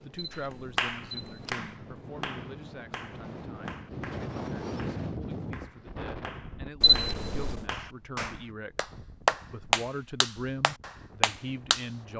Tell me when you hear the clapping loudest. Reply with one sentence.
The volume of the clapping peaks at 9 seconds.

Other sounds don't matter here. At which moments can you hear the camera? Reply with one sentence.
You can hear the camera from 0.1 to 1.5 s and from 6.8 to 7.7 s.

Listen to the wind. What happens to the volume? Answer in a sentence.
The loudness of the wind goes up, then down.